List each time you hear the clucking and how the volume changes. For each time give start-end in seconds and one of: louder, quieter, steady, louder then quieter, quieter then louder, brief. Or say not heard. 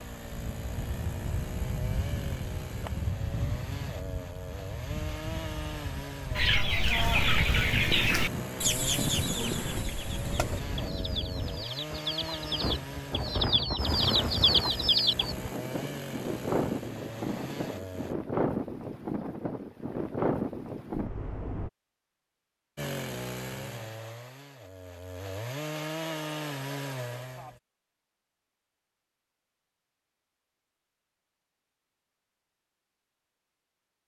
6.3-15.3 quieter then louder.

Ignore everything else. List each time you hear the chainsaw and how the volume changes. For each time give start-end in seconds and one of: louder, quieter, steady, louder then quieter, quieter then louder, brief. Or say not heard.
0.0-18.1 steady
22.8-27.6 quieter then louder.